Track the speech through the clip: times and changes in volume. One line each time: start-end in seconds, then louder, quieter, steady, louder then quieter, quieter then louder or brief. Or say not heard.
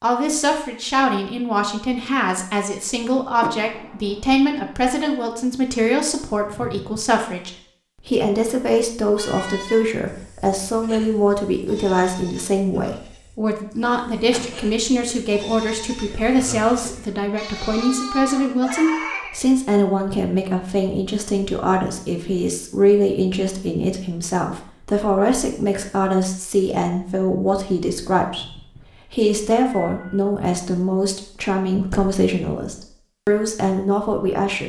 0.0-34.6 steady.